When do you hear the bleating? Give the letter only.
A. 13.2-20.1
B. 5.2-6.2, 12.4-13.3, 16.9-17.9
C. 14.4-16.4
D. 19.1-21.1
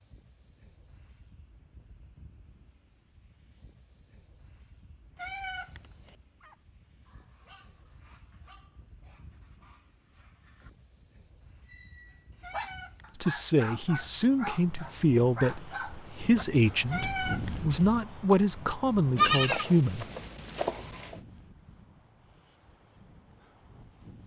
D.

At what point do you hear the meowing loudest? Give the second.
17 s.